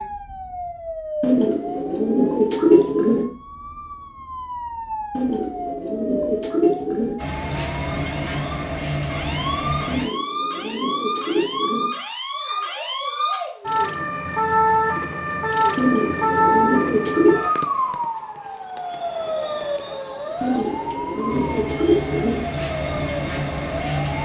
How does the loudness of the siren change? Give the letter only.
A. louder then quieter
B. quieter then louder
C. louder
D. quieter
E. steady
A.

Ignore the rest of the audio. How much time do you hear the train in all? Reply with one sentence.
You can hear the train for 7 seconds altogether.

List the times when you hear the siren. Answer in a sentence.
The siren can be heard from 0.0 to 24.1 s.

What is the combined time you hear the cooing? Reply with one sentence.
You can hear the cooing for 10 seconds altogether.